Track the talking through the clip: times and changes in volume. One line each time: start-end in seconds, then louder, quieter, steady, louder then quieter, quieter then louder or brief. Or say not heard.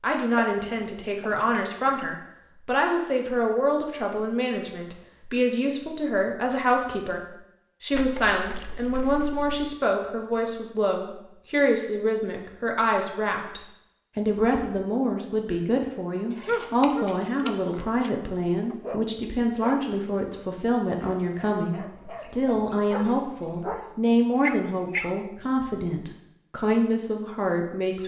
0.0-28.0 steady.